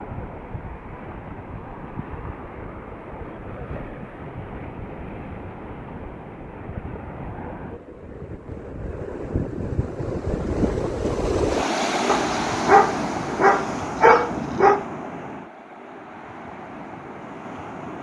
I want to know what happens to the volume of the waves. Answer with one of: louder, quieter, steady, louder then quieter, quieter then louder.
louder then quieter.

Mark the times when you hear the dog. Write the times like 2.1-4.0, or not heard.
12.1-14.8.